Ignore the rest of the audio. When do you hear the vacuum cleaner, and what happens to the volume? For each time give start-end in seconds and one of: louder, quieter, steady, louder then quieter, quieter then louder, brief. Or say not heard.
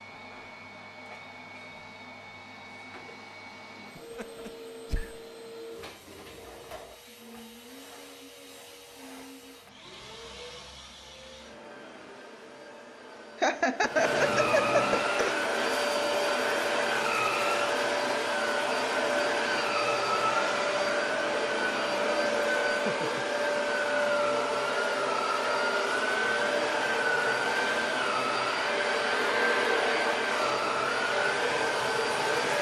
0.0-32.5 louder.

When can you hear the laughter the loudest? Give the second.
14 s.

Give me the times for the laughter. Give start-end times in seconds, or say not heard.
4.0-5.2, 13.4-15.3, 22.6-23.2.